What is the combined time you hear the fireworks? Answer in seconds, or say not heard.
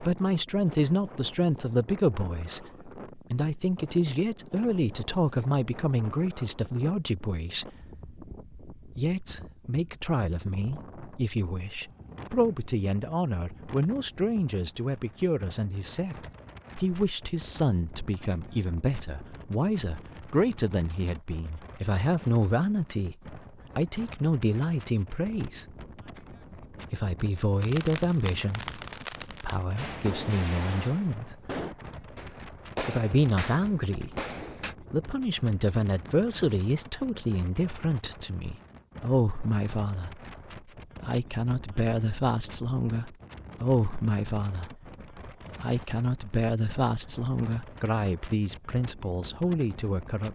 7 s.